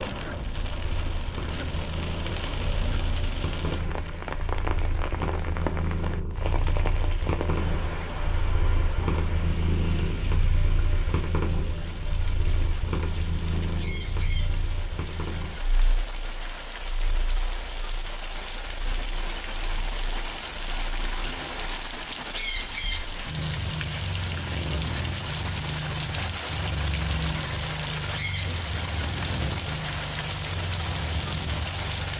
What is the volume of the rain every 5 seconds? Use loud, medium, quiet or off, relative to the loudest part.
medium, medium, medium, medium, loud, loud, loud.